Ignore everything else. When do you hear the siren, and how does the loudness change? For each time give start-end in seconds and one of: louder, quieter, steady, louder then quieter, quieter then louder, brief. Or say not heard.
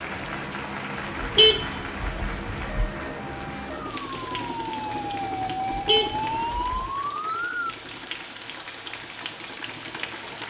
2.6-7.8 louder.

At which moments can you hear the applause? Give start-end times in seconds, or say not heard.
0.0-10.4.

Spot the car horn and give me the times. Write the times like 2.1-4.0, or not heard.
1.2-2.9, 5.7-6.9.